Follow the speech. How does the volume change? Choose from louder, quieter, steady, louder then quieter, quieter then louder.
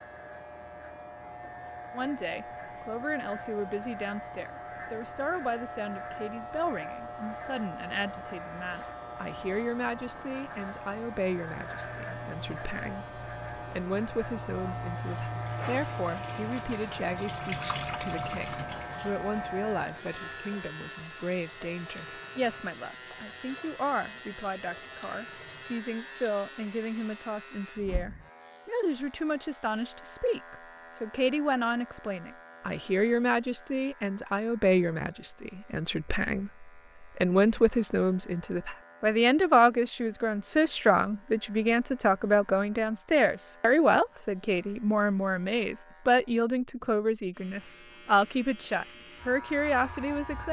louder.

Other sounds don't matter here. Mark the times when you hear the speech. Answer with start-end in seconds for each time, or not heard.
1.9-50.4.